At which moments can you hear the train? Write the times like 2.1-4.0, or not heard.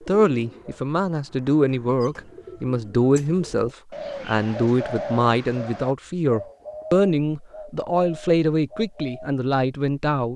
not heard.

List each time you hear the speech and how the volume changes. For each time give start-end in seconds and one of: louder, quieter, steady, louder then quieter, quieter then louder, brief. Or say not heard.
0.1-10.3 steady.